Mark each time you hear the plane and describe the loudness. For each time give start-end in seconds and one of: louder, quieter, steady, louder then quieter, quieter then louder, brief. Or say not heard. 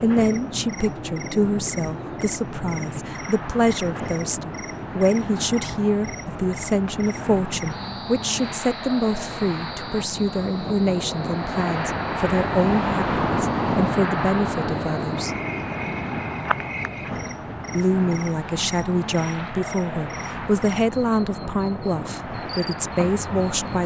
0.0-23.8 louder then quieter.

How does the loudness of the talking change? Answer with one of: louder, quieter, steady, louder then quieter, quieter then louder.
steady.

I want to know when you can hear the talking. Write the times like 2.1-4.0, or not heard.
0.0-15.3, 17.8-23.8.